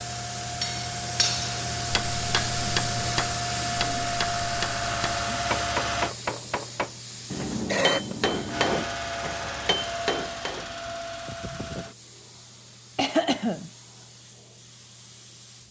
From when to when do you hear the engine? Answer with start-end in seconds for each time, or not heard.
0.0-6.2, 8.4-11.9.